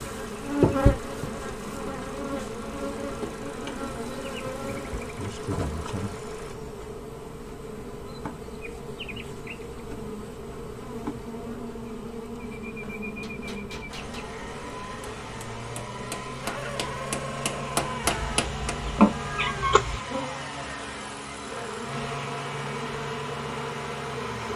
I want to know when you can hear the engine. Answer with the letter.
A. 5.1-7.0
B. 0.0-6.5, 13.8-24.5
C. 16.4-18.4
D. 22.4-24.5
B.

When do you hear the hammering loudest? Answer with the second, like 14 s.
18 s.